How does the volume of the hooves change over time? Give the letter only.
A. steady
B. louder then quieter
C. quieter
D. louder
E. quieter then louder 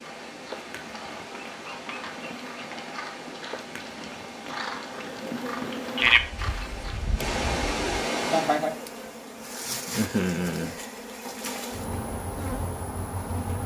D.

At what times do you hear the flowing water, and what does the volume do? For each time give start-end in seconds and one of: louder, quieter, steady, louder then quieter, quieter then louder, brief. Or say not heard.
0.0-8.7 louder.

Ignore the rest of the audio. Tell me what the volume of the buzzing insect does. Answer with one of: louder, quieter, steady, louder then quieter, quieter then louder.
louder then quieter.